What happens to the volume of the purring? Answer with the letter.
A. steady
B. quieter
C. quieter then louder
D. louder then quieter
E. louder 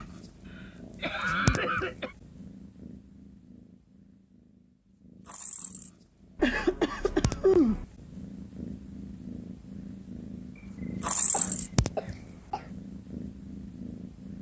C.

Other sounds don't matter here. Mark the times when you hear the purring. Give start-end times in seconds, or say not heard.
0.0-14.3.